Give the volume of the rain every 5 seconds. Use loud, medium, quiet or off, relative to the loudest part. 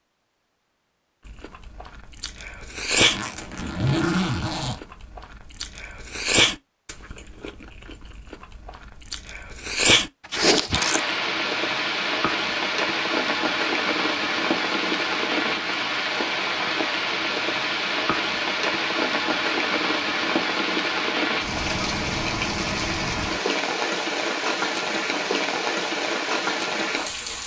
off, off, loud, loud, loud, loud.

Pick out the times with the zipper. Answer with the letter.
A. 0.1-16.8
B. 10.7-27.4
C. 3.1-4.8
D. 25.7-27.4
C.